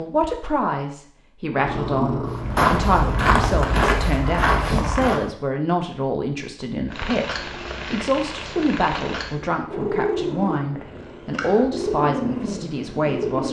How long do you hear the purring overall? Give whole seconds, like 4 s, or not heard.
9 s.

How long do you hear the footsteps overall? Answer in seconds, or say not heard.
3 s.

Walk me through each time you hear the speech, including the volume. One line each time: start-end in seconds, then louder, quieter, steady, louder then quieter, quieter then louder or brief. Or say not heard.
0.0-13.4 steady.